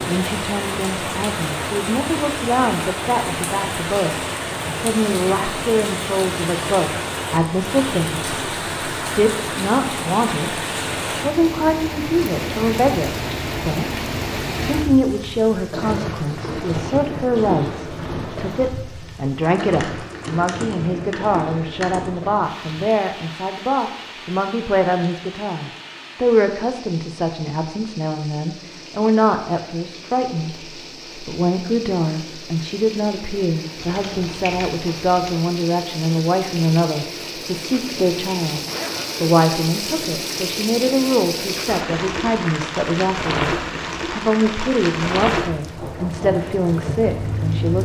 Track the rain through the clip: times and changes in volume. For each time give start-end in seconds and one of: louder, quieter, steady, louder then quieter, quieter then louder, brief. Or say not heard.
0.0-47.8 quieter then louder.